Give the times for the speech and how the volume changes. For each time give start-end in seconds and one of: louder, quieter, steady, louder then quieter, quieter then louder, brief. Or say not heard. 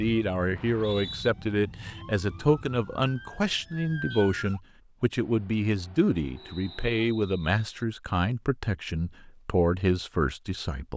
0.0-10.9 steady.